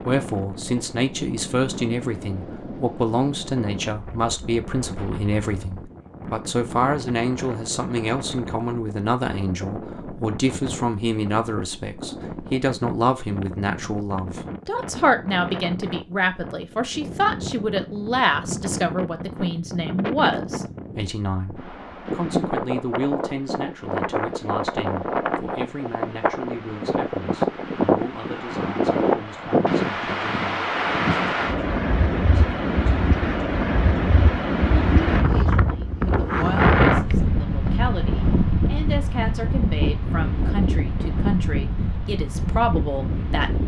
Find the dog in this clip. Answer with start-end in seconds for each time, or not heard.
not heard.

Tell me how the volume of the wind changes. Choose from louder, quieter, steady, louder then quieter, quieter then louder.
louder.